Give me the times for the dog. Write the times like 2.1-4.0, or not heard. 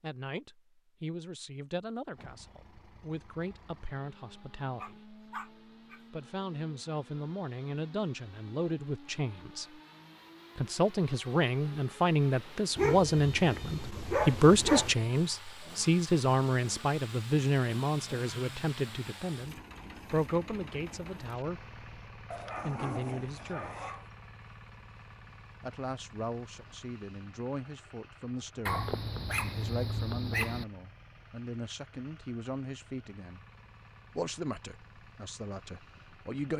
4.8-6.0, 12.8-14.9, 22.3-24.1, 28.6-30.6.